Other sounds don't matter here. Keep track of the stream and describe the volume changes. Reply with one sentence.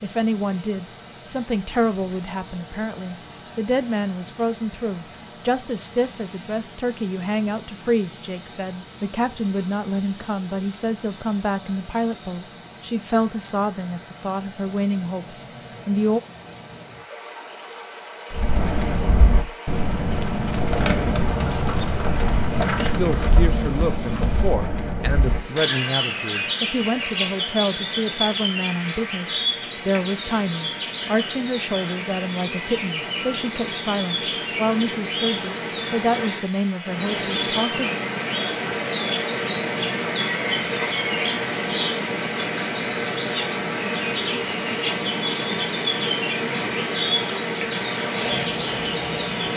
The volume of the stream goes up.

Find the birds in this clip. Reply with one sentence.
The birds can be heard from 18.3 to 49.5 s.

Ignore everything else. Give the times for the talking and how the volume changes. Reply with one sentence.
The talking can be heard from 0.0 to 16.2 s, at a steady volume; and from 22.9 to 37.9 s, at a steady volume.